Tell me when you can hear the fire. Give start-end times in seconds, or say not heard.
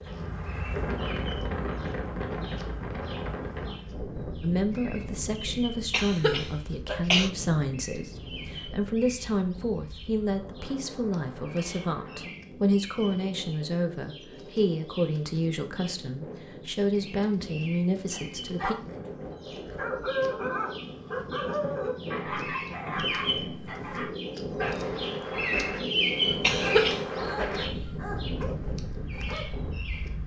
not heard.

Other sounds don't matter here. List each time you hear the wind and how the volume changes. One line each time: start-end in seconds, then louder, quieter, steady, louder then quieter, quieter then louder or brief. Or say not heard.
0.0-30.2 quieter then louder.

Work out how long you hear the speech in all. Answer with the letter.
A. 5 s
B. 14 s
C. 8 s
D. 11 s
B.